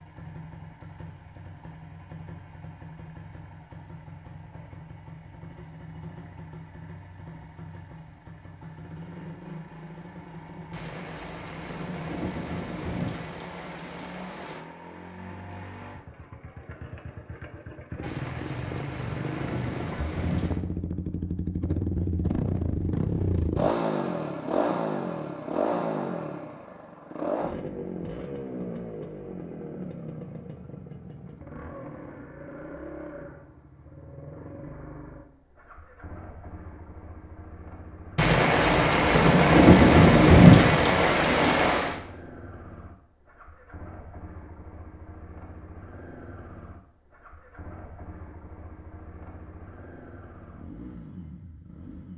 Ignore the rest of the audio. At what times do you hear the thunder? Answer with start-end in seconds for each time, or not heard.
10.7-14.7, 18.0-20.6, 38.1-42.0.